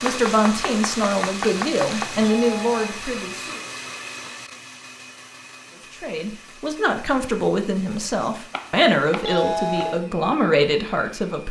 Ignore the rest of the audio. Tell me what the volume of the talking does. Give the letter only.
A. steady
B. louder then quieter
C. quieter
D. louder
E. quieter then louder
A.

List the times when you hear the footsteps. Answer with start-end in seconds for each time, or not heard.
not heard.